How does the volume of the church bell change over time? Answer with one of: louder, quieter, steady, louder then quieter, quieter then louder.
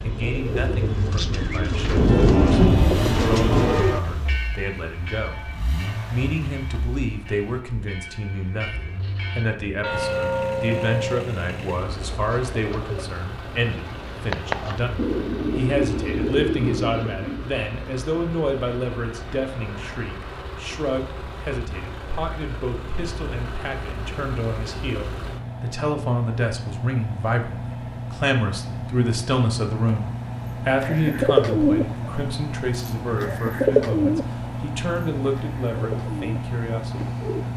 quieter then louder.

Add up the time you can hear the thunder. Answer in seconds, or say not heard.
2 s.